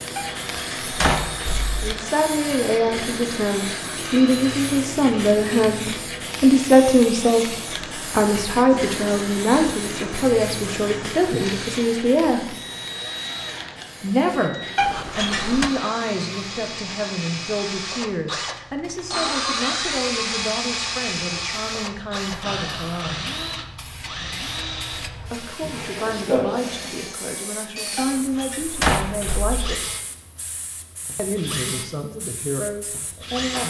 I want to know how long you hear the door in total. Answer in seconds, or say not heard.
4 s.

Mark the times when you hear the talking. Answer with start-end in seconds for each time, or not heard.
1.8-12.6, 14.0-14.6, 15.2-23.2, 25.2-29.9, 31.1-33.6.